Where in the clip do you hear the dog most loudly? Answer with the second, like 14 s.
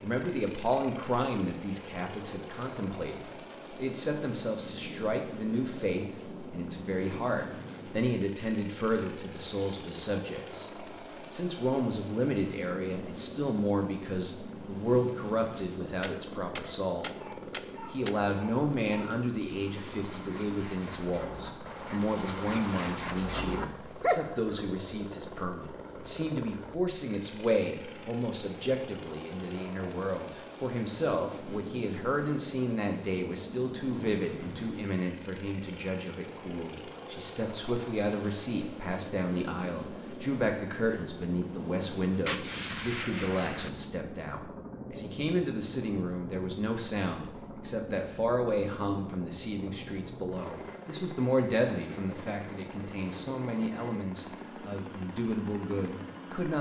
24 s.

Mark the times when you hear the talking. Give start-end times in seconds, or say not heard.
0.0-10.7, 11.3-17.1, 17.9-56.5.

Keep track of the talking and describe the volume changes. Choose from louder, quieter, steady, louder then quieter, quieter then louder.
steady.